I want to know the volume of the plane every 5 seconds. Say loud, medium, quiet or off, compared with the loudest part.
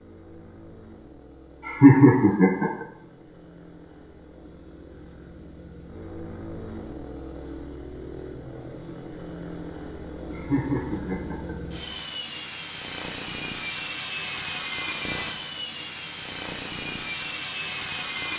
quiet, medium, loud, loud.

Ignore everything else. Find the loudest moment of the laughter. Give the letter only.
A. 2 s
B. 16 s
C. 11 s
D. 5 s
A.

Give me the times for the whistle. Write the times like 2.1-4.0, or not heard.
not heard.